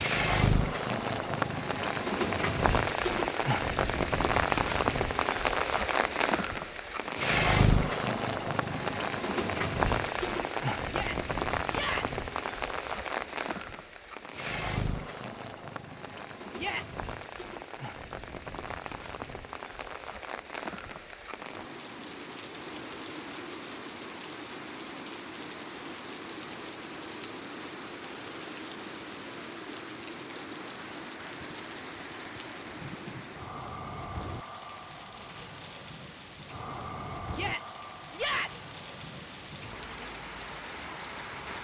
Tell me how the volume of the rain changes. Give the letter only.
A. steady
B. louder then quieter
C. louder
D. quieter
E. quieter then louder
D.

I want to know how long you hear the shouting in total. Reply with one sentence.
The shouting can be heard for 3 seconds in total.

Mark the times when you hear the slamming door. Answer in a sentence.
The slamming door can't be heard in this clip.